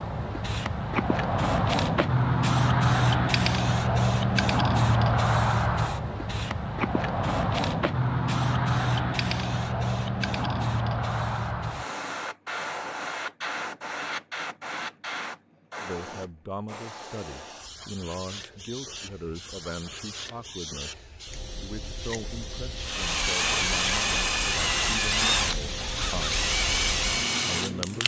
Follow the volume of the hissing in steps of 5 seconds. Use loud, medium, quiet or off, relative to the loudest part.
loud, loud, medium, quiet, quiet, medium.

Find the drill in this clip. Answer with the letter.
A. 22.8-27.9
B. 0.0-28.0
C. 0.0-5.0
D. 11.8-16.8
A.